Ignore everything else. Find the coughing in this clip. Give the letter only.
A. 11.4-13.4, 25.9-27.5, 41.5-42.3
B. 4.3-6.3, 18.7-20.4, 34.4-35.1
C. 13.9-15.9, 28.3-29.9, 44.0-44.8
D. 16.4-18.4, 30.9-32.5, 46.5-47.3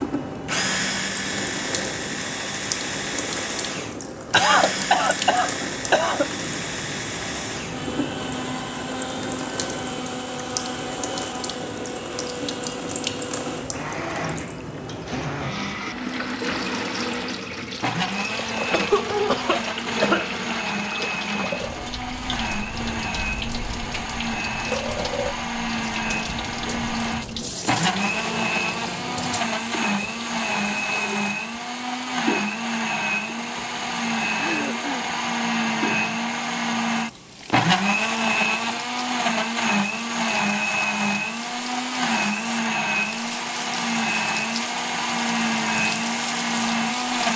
B.